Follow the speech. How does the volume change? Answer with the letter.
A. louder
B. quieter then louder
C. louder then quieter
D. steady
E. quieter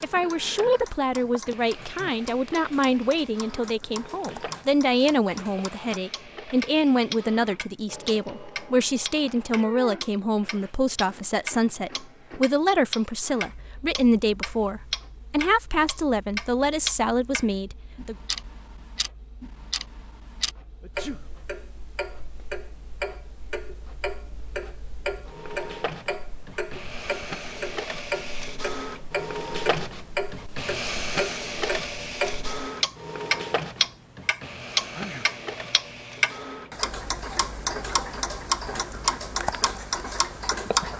D.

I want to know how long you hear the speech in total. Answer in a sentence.
You can hear the speech for 18 seconds altogether.